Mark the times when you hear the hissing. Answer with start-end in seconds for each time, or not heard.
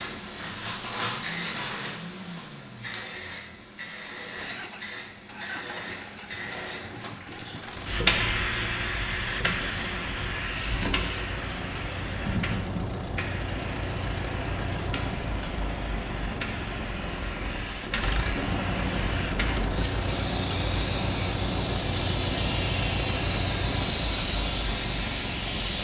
0.0-25.8.